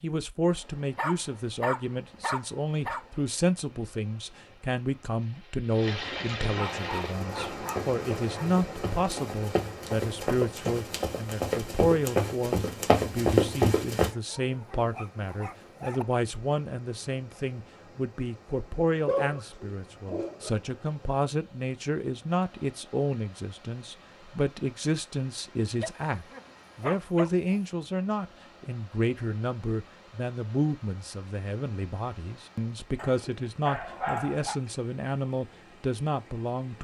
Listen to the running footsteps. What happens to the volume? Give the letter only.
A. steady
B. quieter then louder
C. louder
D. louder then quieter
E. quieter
C.